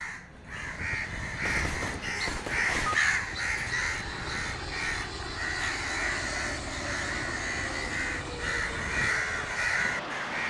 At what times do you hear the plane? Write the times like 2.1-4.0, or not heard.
0.0-10.4.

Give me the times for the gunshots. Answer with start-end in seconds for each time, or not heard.
1.4-3.0.